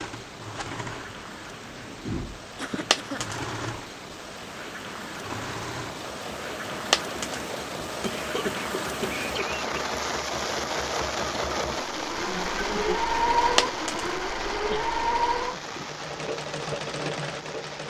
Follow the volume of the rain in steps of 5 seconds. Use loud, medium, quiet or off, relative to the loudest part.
medium, loud, loud, medium.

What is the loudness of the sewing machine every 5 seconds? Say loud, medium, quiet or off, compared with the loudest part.
medium, medium, loud, loud.